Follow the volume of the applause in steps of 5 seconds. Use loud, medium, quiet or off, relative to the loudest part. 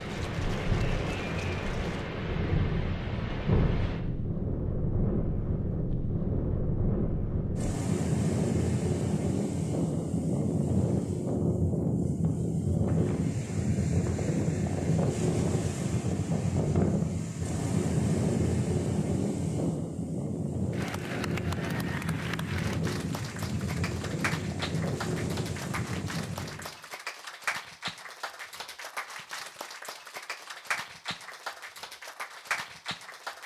medium, off, off, off, loud, loud, loud.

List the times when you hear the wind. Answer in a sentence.
You can hear the wind from 0.0 to 26.6 s.